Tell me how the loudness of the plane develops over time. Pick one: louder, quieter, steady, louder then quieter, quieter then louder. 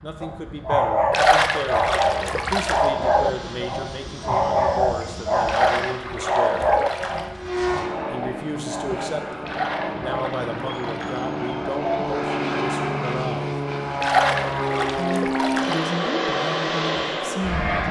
louder.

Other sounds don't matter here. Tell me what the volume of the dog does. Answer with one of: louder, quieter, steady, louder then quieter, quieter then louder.
quieter.